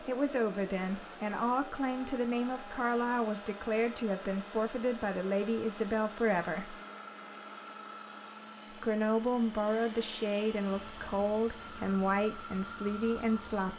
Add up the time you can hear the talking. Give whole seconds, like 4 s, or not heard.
12 s.